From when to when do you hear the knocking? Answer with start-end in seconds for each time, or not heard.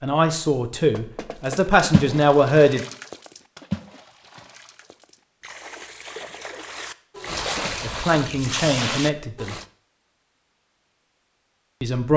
0.9-1.6.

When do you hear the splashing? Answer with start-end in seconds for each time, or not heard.
1.4-9.7.